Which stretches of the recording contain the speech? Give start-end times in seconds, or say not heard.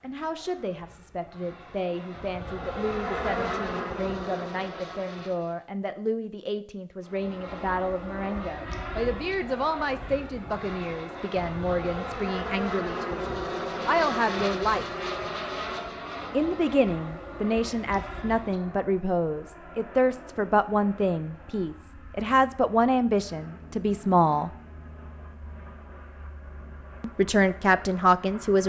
0.0-14.8, 16.3-24.5, 27.0-28.6.